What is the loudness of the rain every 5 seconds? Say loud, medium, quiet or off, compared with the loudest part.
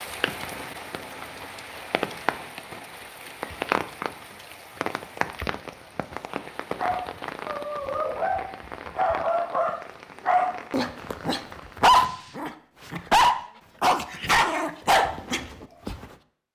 loud, loud, medium, off.